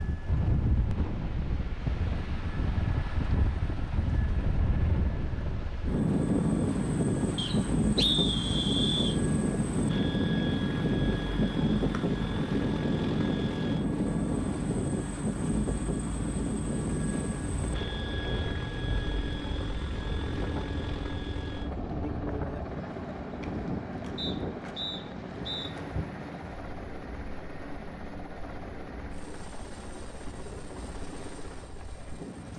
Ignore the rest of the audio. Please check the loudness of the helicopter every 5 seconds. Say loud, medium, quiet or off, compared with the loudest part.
medium, loud, loud, loud, loud, medium, medium.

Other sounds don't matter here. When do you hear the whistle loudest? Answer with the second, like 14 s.
8 s.